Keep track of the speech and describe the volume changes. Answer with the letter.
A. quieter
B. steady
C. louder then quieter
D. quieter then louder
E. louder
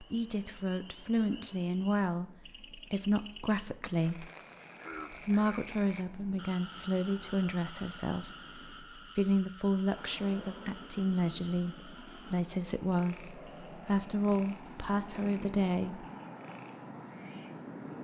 B.